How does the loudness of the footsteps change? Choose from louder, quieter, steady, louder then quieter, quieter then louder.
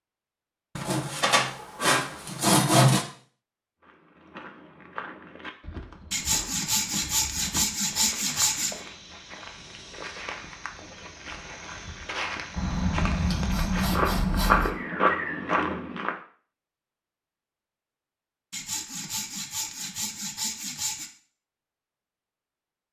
louder.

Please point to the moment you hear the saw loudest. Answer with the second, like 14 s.
3 s.